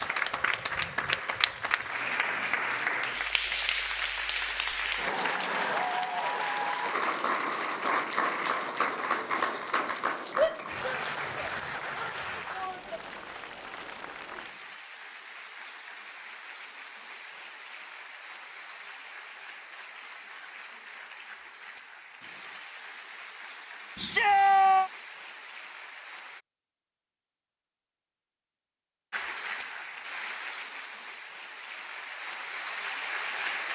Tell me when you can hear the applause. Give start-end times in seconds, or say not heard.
0.0-26.4, 29.1-33.6.